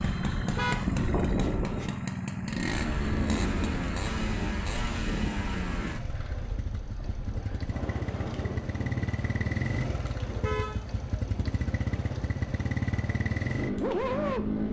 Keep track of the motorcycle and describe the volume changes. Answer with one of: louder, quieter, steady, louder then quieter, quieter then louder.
quieter then louder.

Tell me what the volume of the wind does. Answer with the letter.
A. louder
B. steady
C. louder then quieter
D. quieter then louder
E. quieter
E.